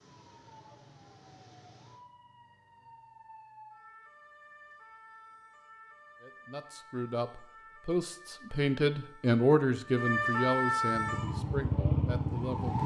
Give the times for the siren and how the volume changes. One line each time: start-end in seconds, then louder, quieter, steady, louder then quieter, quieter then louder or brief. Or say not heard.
0.0-12.8 louder.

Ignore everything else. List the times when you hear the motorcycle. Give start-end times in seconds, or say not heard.
10.9-12.6.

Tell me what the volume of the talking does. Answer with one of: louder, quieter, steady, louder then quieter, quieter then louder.
louder then quieter.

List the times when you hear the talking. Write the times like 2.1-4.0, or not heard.
6.2-12.8.